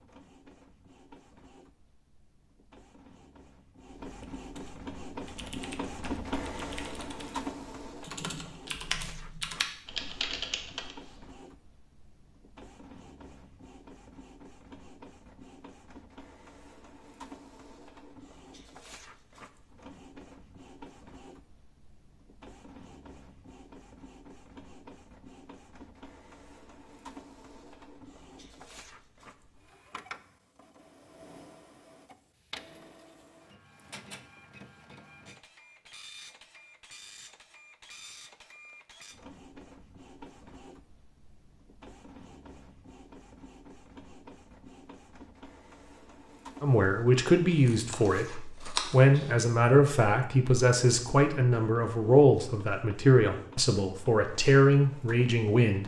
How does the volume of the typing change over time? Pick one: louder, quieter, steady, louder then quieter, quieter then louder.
louder.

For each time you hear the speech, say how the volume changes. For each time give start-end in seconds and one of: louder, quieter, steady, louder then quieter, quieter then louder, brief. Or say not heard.
46.6-55.8 steady.